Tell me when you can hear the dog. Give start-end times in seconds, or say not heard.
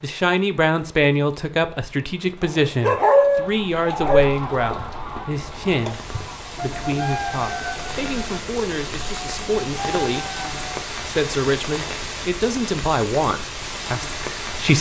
2.4-4.3.